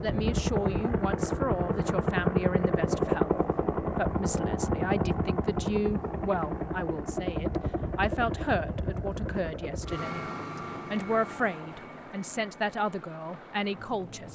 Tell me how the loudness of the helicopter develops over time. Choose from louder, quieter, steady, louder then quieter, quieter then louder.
quieter.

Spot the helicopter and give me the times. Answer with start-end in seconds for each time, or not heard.
0.0-14.3.